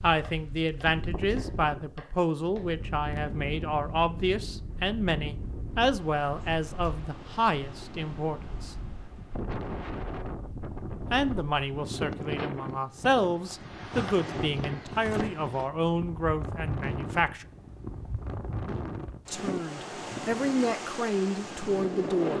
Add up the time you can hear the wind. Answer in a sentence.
You can hear the wind for 22 seconds altogether.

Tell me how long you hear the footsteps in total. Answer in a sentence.
The footsteps can't be heard in this clip.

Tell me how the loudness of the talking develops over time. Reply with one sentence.
The volume of the talking stays about the same.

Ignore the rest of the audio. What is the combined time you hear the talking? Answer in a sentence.
You can hear the talking for 18 seconds altogether.